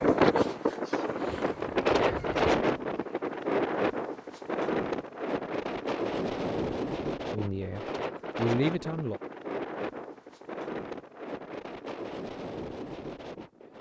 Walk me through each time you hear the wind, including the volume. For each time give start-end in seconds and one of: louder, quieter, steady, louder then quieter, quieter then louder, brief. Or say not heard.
0.0-13.7 quieter.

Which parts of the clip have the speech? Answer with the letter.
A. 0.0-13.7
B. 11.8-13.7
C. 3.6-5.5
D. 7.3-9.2
D.